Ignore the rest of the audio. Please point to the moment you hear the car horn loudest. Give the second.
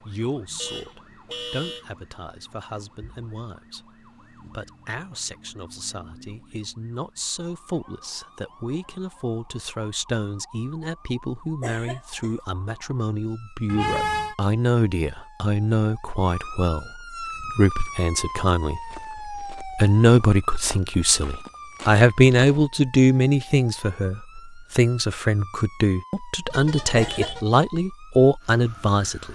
14 s.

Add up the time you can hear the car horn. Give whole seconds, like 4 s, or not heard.
3 s.